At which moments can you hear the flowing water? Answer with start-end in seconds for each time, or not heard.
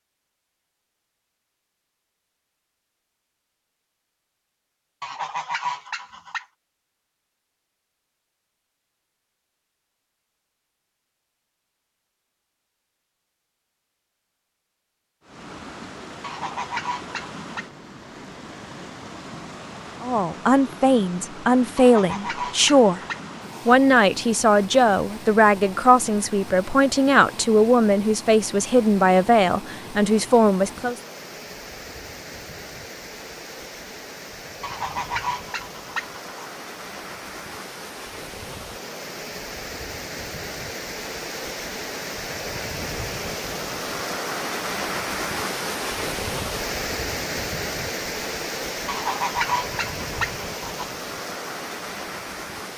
15.2-52.7.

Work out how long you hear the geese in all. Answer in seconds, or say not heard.
9 s.